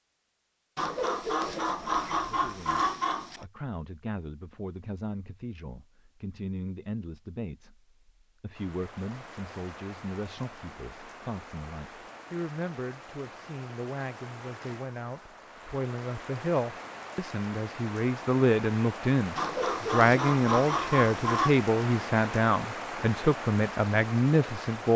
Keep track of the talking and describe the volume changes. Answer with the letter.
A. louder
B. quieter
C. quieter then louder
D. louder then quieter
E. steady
A.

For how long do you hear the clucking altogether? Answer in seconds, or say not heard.
5 s.